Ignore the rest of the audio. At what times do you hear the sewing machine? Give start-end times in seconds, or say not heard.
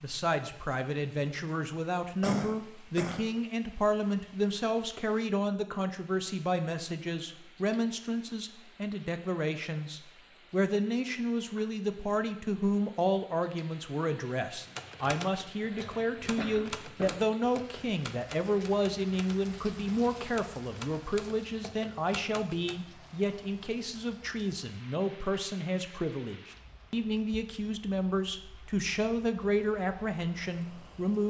not heard.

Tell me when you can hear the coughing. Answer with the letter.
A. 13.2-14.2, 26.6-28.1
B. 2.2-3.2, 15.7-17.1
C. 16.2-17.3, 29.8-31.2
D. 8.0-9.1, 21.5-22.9
B.